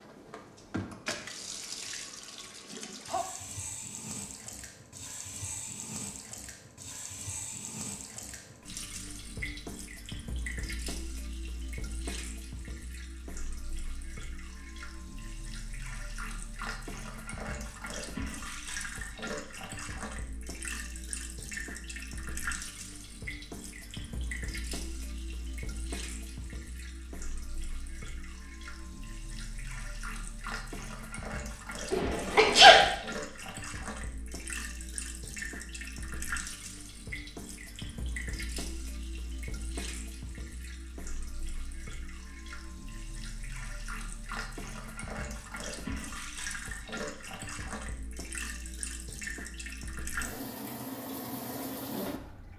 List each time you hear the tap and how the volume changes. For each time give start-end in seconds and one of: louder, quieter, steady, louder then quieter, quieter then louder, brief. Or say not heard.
0.0-52.5 steady.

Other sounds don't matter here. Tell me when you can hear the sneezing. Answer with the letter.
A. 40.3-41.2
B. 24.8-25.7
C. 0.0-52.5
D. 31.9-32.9
D.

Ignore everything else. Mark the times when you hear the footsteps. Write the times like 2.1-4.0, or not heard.
not heard.